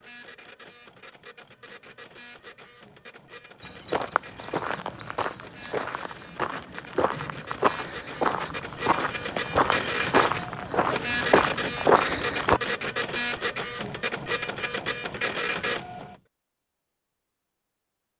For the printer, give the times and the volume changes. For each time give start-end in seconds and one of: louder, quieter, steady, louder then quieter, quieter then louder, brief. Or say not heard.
0.0-16.1 louder.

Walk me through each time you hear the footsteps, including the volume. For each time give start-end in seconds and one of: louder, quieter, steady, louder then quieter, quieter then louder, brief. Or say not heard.
3.6-12.6 louder.